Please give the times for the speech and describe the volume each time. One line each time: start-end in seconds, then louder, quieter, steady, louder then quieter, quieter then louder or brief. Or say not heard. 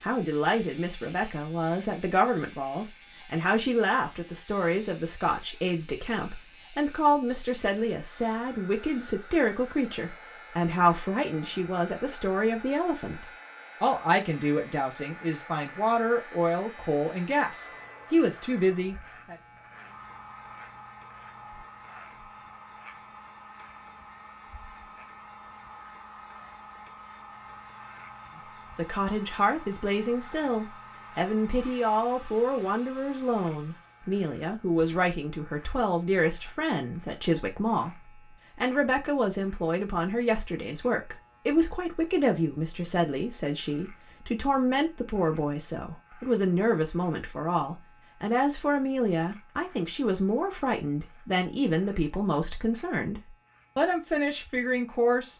0.0-19.4 steady
28.8-55.3 steady.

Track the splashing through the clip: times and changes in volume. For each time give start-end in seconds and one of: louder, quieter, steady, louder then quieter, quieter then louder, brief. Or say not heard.
not heard.